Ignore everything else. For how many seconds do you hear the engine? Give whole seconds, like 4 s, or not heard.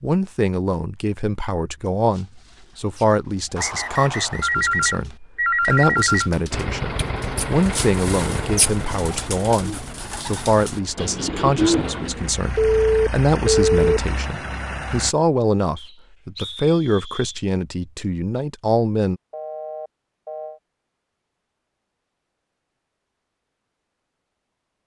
9 s.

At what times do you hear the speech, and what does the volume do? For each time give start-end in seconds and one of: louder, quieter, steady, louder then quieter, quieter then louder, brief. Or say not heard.
0.0-19.2 steady.